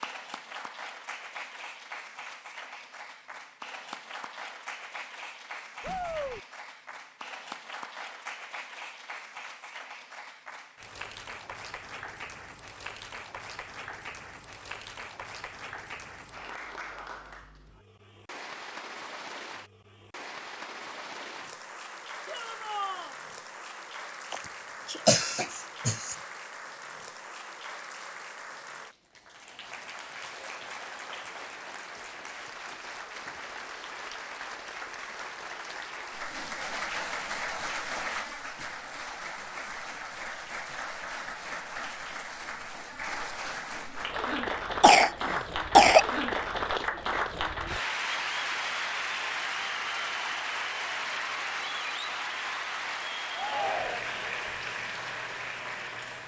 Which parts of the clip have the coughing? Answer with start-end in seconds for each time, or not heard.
24.3-26.1, 44.8-46.0.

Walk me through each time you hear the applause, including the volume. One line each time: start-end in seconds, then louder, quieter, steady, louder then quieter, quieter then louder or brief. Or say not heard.
0.0-56.2 louder.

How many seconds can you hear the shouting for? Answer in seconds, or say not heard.
2 s.